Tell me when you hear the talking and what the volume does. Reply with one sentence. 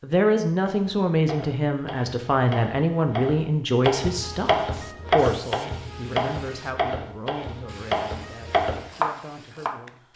You can hear the talking from 0.0 to 10.1 s, getting quieter.